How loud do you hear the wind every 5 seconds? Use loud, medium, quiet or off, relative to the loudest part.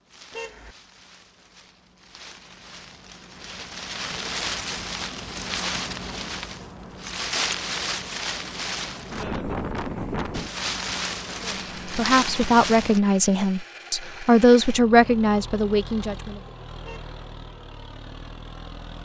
medium, loud, loud, off.